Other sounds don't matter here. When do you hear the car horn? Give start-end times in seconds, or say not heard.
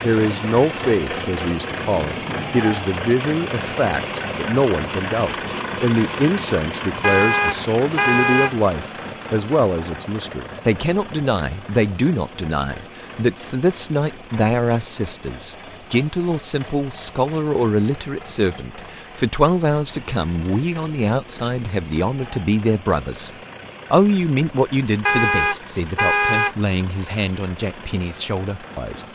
7.0-8.5, 25.1-26.6.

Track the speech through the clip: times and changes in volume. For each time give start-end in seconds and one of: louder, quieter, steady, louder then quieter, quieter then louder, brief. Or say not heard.
0.0-23.3 steady
23.9-29.1 quieter.